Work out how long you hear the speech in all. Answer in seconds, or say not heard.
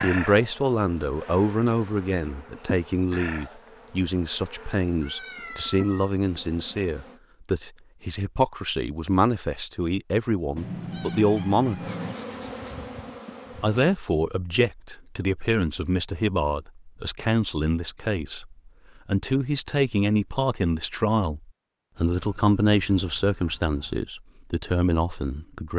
24 s.